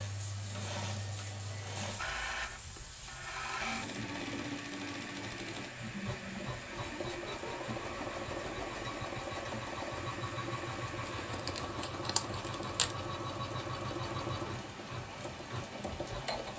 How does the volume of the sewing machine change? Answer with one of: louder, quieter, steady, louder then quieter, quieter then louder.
steady.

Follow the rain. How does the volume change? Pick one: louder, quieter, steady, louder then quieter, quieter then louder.
steady.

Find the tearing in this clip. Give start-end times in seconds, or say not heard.
11.1-12.9.